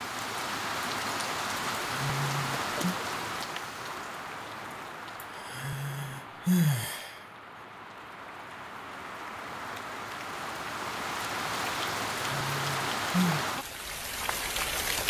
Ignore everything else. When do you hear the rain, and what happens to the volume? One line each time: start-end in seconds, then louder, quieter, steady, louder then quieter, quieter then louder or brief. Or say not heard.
0.0-15.0 quieter then louder.